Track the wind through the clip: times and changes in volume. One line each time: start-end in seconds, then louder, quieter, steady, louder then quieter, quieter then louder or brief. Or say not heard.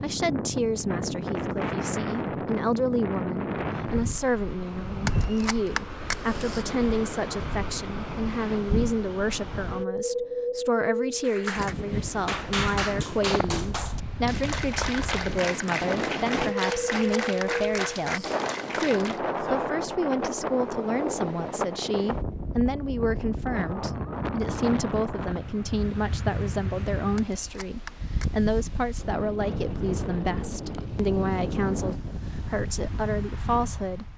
0.0-34.1 steady.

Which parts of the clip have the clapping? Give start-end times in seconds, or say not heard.
11.2-19.2.